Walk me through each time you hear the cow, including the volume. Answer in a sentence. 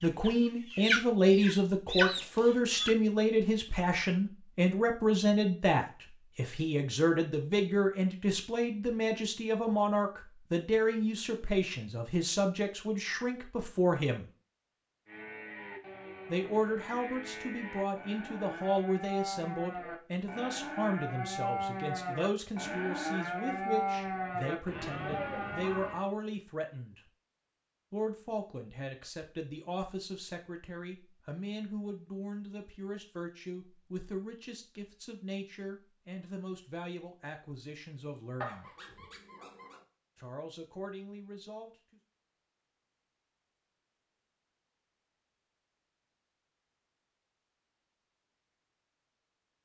The cow can be heard from 15.1 to 26.0 s, getting louder.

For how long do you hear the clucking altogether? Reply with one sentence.
The clucking can be heard for 3 seconds in total.